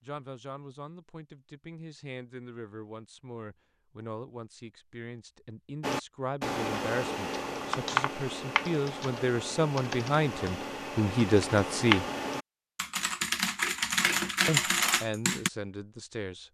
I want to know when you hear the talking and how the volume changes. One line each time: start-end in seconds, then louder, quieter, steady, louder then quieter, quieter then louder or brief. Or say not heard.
0.0-12.1 louder
14.4-16.4 brief.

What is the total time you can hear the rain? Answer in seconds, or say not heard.
not heard.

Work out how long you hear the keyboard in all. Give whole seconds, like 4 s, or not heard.
10 s.